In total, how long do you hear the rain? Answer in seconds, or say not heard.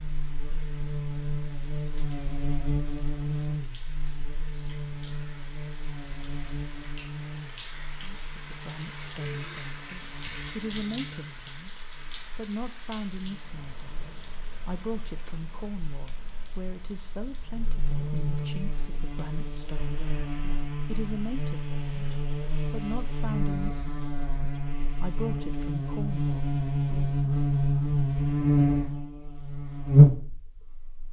23 s.